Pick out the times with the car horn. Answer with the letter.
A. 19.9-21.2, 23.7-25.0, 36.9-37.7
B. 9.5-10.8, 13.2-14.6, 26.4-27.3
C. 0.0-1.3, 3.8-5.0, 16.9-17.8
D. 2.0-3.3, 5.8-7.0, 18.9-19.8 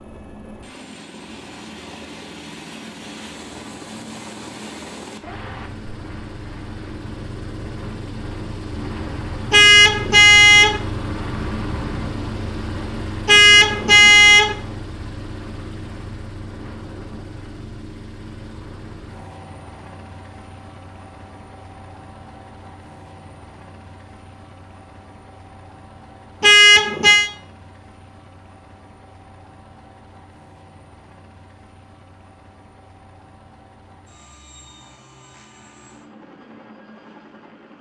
B.